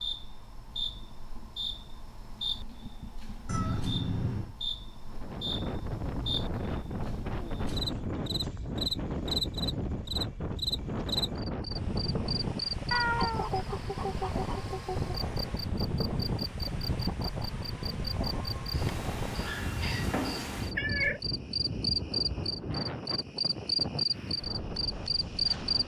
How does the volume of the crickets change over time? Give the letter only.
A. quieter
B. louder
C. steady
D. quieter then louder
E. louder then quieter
B.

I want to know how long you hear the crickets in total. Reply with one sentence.
You can hear the crickets for 26 seconds altogether.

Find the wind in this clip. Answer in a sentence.
The wind can be heard from 5.0 to 25.8 s.